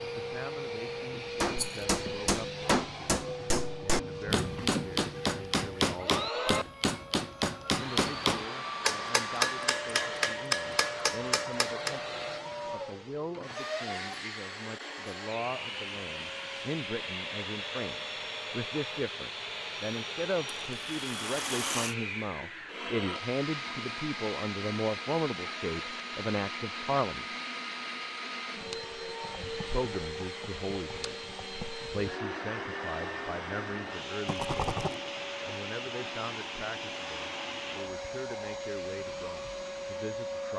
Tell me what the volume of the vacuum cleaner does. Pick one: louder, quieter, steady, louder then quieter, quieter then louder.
steady.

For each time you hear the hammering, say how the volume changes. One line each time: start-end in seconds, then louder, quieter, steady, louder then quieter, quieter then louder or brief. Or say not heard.
1.4-12.0 steady.